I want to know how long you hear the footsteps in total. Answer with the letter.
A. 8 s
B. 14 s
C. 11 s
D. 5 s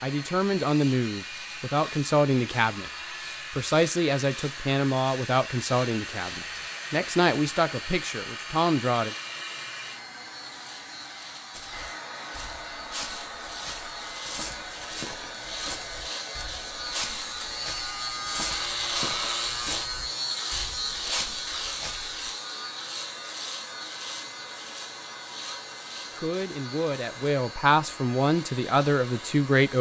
C.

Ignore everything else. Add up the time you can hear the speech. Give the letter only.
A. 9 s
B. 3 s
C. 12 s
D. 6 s
C.